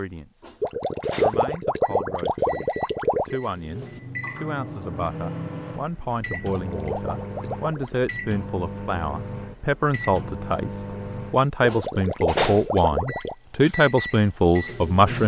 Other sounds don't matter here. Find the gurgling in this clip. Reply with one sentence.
The gurgling can be heard from 0.6 to 3.4 s, from 6.3 to 8.0 s and from 11.6 to 13.3 s.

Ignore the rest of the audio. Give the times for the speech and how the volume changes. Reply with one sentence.
You can hear the speech briefly from 0.0 to 0.5 s; and from 1.1 to 15.2 s, getting louder.